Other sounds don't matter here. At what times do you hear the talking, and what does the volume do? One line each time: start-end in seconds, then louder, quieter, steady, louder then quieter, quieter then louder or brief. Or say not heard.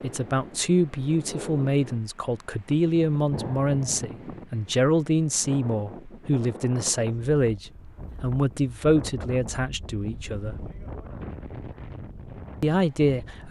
0.0-10.7 steady
12.6-13.4 brief.